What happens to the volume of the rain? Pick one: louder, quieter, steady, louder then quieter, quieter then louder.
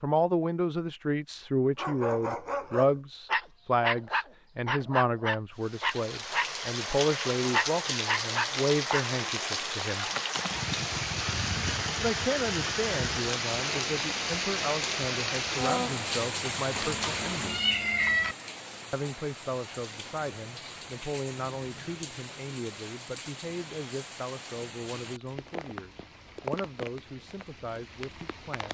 quieter.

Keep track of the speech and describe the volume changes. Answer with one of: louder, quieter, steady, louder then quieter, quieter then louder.
quieter.